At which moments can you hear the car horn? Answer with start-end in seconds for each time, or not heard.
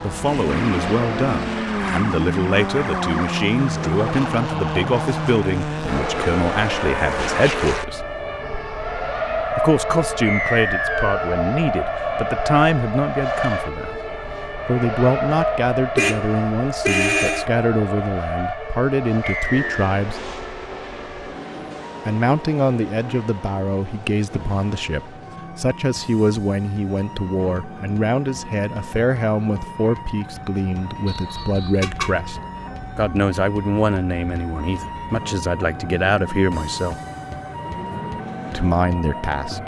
15.9-17.4, 31.8-32.2.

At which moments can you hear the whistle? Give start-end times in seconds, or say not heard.
10.2-11.2, 19.2-19.8, 31.1-31.9.